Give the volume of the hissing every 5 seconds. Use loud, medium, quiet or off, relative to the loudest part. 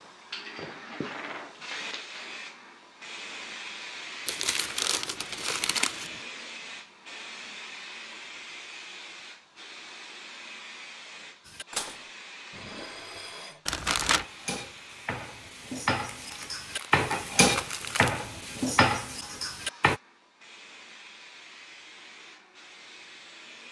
loud, loud, medium, medium, medium.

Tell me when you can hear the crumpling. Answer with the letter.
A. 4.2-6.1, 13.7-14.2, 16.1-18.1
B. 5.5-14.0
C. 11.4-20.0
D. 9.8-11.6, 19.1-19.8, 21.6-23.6
A.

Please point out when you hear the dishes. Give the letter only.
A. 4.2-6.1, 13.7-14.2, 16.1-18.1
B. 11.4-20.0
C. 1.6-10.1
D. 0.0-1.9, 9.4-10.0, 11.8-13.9
B.